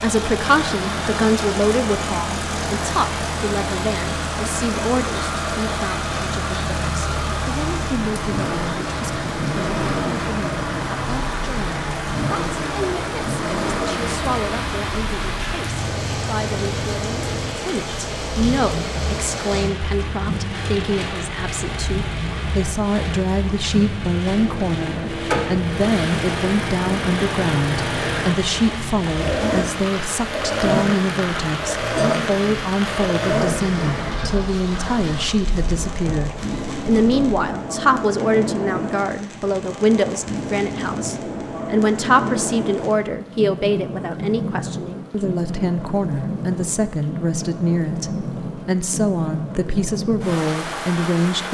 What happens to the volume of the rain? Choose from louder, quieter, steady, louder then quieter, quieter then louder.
steady.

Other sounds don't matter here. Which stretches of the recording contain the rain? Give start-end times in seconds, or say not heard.
0.0-51.4.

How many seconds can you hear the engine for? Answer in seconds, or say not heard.
37 s.